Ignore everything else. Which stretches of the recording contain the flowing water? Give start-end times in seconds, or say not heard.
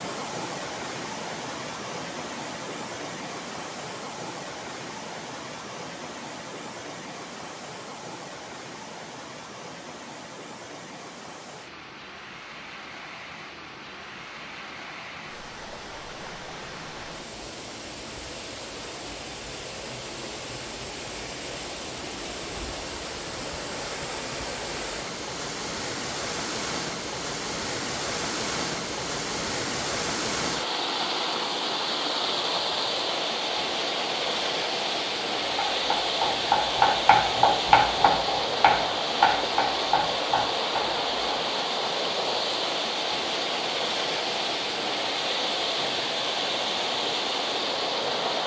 0.0-48.4.